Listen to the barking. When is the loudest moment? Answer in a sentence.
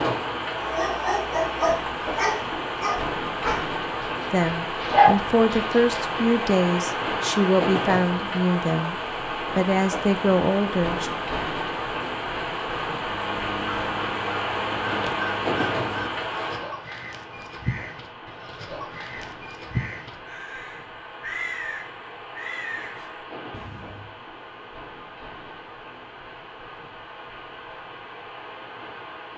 The loudest moment of the barking is at 5 seconds.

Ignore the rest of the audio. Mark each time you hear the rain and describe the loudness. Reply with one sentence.
You can hear the rain from 0.0 to 29.3 s, getting quieter.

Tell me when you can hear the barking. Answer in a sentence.
You can hear the barking from 0.6 to 5.8 s.